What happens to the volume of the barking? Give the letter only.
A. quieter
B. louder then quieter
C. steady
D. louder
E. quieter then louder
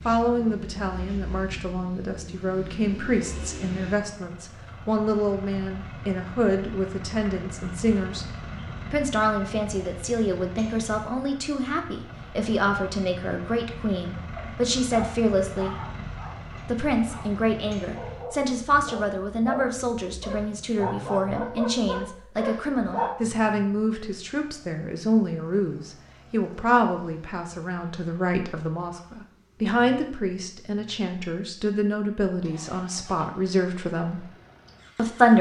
E.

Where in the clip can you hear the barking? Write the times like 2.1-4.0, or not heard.
14.2-23.1.